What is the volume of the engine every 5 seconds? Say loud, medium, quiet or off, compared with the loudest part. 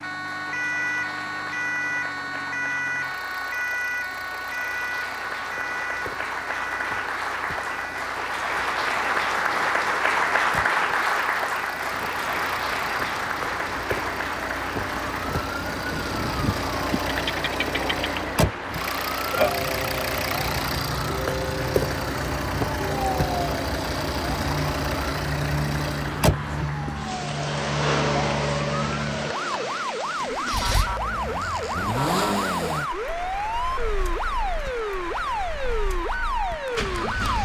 quiet, quiet, medium, loud, loud, loud, loud, medium.